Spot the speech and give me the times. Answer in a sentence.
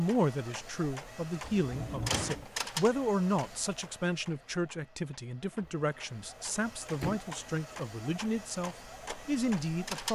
You can hear the speech from 0.0 to 10.1 s.